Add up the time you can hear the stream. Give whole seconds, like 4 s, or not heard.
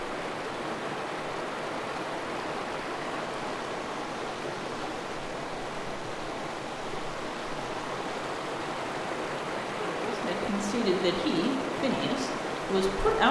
13 s.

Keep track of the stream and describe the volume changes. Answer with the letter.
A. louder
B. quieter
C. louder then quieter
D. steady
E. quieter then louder
D.